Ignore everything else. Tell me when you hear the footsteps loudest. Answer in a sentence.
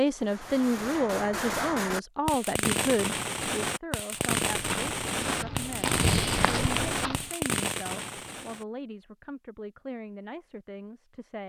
The volume of the footsteps peaks at 6 seconds.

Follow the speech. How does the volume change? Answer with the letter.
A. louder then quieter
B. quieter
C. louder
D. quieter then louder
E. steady
B.